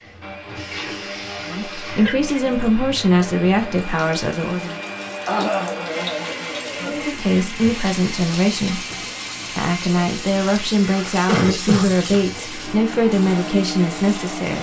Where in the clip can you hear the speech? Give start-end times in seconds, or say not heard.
1.4-4.8, 6.8-8.8, 9.6-14.5.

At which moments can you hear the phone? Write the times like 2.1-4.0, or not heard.
not heard.